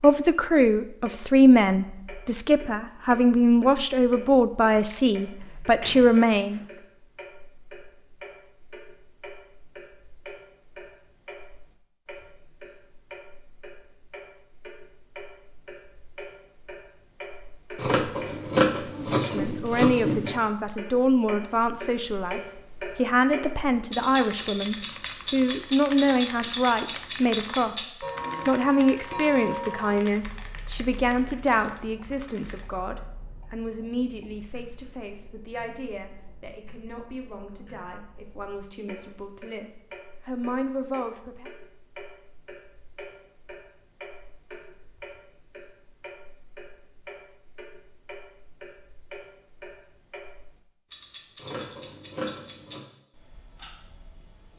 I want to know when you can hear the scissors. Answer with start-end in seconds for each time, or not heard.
17.8-20.4, 51.4-52.9.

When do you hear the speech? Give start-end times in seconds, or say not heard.
0.0-6.6, 18.9-41.5.